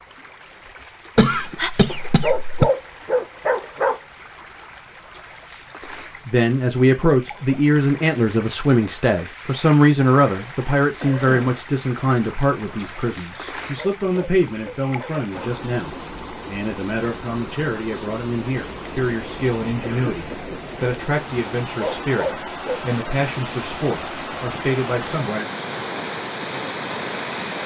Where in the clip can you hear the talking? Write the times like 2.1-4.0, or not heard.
6.2-25.4.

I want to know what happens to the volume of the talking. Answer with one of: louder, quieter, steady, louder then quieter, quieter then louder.
quieter.